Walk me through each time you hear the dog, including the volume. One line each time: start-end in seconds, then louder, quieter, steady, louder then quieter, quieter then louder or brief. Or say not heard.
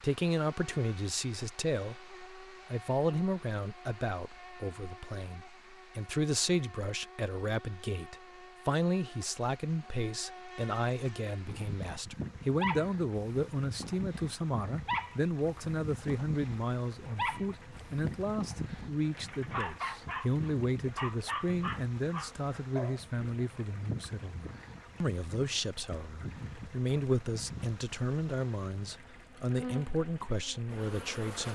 11.3-23.4 steady.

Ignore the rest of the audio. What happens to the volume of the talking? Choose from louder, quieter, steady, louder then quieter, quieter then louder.
steady.